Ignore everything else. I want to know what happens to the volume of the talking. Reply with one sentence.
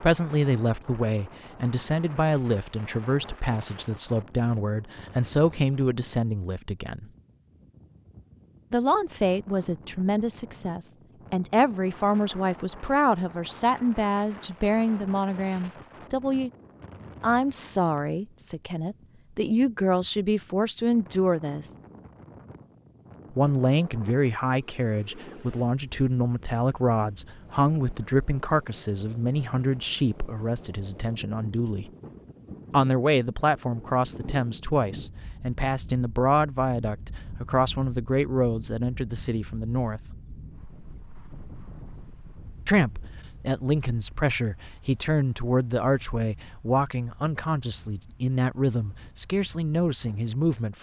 The loudness of the talking stays about the same.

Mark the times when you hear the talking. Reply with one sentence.
The talking can be heard from 0.0 to 7.1 s, from 8.7 to 16.5 s, from 17.2 to 21.7 s, from 23.3 to 31.9 s, from 32.7 to 40.1 s and from 42.6 to 50.7 s.